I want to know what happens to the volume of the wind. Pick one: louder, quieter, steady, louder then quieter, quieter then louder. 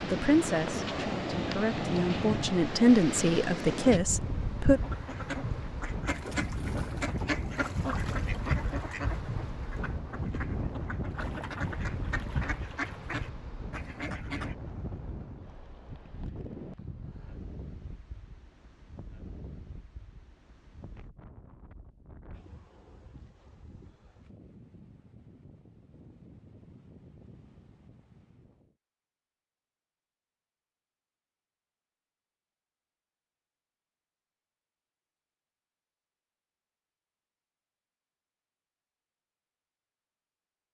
quieter.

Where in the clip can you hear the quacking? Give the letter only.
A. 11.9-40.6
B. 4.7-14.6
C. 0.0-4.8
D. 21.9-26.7
B.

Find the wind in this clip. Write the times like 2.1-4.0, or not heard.
0.0-28.8.